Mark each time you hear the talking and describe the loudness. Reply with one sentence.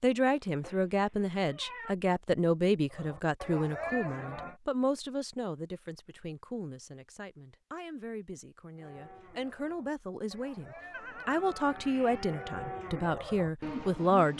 You can hear the talking from 0.0 to 14.3 s, getting quieter then louder.